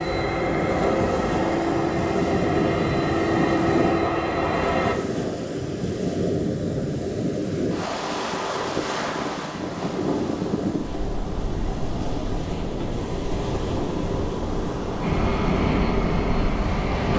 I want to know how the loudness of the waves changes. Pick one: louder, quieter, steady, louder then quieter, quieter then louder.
steady.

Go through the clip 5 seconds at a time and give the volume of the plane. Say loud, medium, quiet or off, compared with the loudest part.
loud, off, off, loud.